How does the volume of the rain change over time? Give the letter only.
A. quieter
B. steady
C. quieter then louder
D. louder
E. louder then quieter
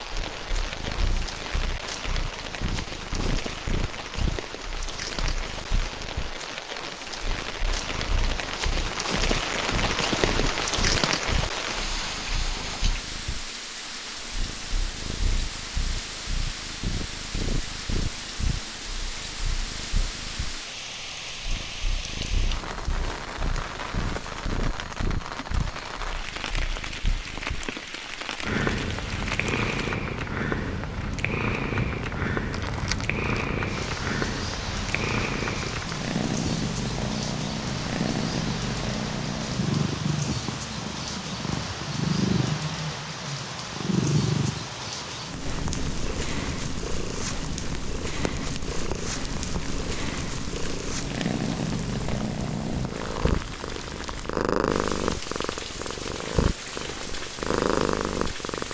A.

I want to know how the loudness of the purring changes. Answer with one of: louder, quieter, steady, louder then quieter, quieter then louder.
louder.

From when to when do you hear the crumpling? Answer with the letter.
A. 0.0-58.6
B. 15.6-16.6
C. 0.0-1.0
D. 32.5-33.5
D.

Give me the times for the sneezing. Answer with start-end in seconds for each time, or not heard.
not heard.